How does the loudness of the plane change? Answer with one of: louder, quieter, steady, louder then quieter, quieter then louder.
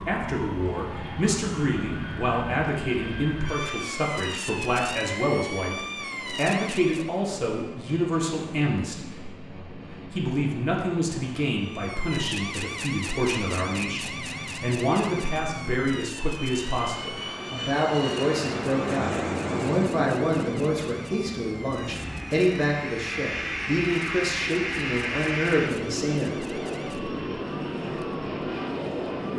louder.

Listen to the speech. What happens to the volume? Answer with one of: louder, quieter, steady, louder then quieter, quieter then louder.
steady.